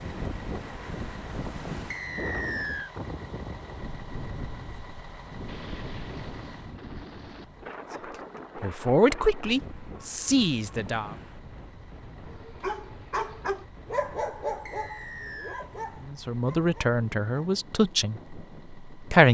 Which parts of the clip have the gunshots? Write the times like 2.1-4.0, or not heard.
5.5-7.5.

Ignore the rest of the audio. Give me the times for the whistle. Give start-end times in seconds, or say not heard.
1.9-2.9, 14.7-15.7.